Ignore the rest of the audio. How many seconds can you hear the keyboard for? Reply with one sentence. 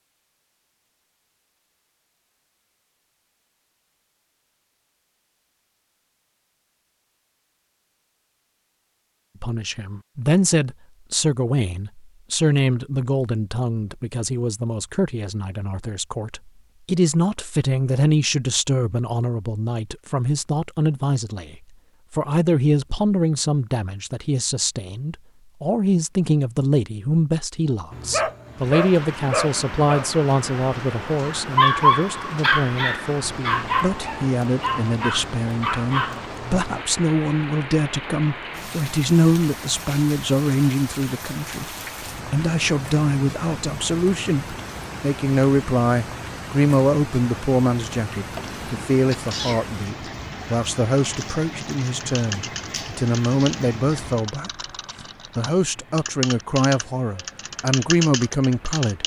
The keyboard can be heard for 8 seconds in total.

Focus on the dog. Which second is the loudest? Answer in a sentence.
The loudest moment of the dog is at 32 seconds.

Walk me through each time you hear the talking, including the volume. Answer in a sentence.
You can hear the talking from 9.4 to 59.0 s, at a steady volume.